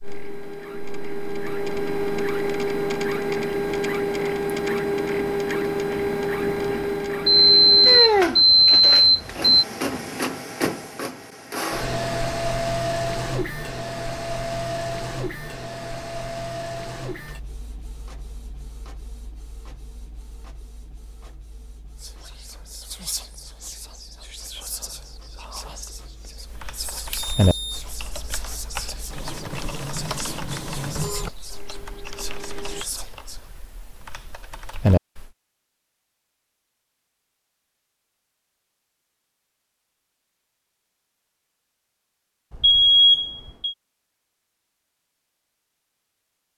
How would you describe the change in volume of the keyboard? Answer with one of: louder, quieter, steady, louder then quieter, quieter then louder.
quieter then louder.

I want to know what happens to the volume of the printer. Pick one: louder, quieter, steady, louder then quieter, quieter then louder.
quieter then louder.